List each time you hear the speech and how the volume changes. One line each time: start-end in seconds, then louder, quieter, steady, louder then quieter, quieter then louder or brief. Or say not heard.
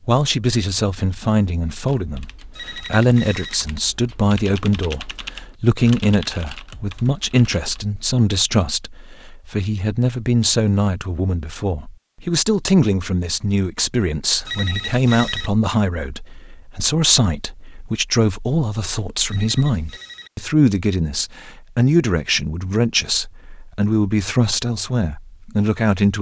0.1-26.1 steady.